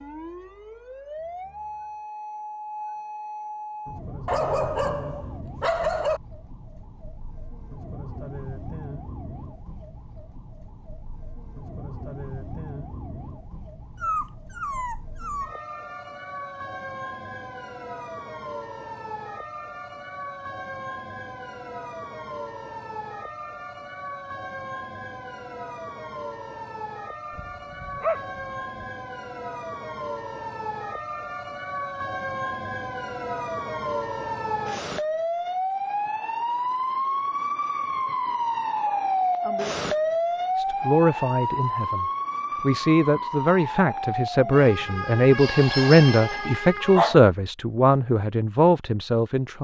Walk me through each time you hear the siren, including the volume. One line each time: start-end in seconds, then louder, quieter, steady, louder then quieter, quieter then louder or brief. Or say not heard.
0.0-47.0 louder.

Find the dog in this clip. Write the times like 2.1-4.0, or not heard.
4.2-6.2, 14.0-15.6, 27.4-28.9, 45.4-47.1.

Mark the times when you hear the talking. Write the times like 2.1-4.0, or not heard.
40.5-49.5.